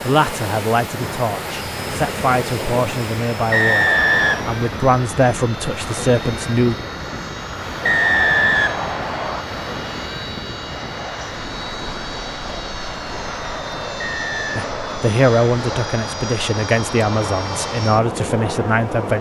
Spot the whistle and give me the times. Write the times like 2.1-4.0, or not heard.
3.5-4.5, 7.8-9.4, 13.9-14.7.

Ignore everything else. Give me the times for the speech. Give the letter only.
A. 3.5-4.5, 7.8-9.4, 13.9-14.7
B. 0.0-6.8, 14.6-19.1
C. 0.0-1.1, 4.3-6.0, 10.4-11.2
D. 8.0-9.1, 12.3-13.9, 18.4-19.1
B.